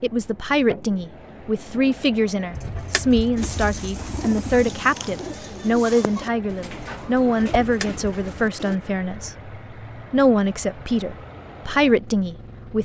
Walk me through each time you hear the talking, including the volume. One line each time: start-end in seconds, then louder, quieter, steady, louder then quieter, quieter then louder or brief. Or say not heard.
0.0-9.5 steady
10.1-12.8 brief.